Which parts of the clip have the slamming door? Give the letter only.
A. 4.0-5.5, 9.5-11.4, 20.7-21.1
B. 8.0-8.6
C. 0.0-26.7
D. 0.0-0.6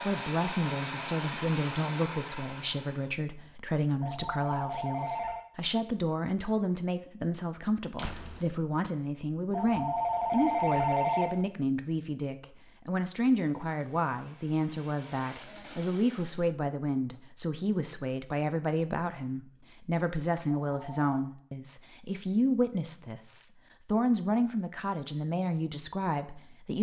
B.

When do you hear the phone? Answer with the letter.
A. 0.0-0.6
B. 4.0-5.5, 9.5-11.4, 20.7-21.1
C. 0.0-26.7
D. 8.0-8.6
B.